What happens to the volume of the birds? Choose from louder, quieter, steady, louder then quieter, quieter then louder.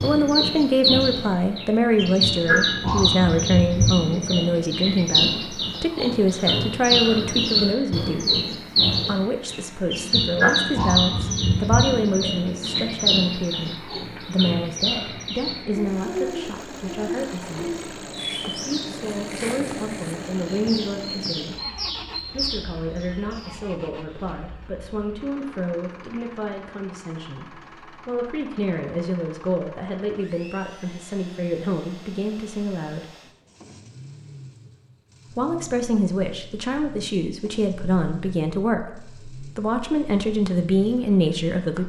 quieter.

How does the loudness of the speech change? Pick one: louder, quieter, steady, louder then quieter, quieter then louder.
quieter then louder.